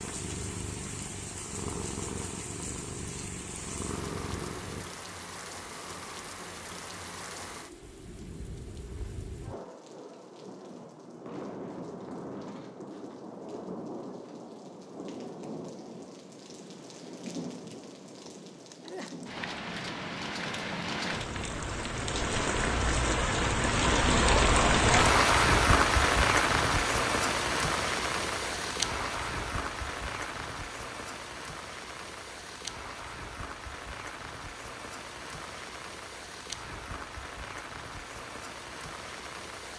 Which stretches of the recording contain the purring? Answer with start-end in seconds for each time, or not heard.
0.0-4.8.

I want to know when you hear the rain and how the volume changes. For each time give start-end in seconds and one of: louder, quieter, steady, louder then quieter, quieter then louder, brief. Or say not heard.
0.0-39.7 louder then quieter.